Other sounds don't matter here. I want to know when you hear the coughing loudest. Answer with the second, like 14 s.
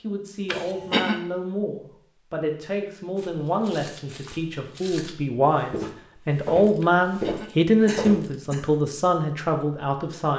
1 s.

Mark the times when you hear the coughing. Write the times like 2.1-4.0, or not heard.
0.5-1.1, 6.8-8.7.